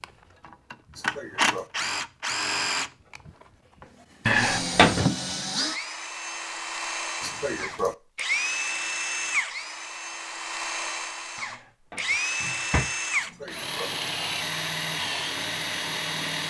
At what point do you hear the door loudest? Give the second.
5 s.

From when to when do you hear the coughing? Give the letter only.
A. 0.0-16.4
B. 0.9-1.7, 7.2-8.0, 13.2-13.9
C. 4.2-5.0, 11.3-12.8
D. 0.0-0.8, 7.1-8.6
B.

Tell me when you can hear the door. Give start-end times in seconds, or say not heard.
4.2-5.0, 11.3-12.8.